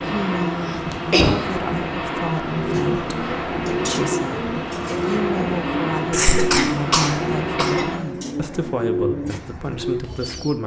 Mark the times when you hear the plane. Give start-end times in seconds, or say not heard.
0.0-8.0.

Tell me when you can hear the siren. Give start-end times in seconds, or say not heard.
not heard.